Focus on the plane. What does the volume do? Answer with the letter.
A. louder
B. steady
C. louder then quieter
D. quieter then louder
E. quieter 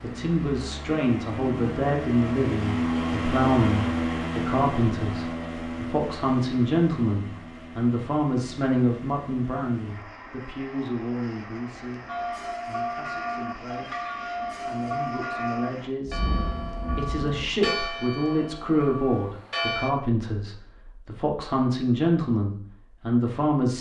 E.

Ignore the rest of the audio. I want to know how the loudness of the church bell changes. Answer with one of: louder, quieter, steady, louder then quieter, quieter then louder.
quieter.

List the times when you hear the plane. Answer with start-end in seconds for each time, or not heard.
0.0-15.9.